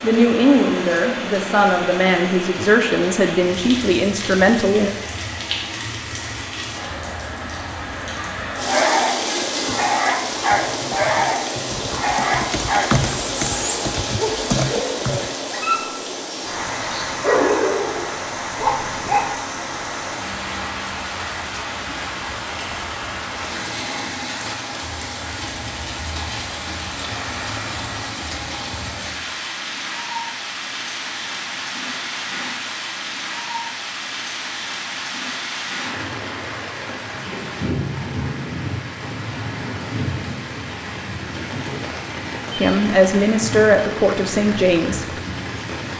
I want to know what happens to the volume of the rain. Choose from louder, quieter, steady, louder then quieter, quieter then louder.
steady.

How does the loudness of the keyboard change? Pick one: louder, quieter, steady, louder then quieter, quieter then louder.
louder.